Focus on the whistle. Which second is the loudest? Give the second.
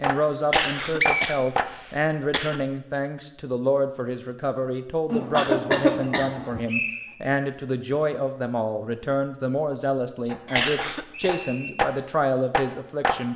1 s.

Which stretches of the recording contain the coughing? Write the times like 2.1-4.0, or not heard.
0.5-2.6, 5.1-6.6, 10.6-11.3.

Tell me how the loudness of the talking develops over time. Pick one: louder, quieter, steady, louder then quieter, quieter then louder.
steady.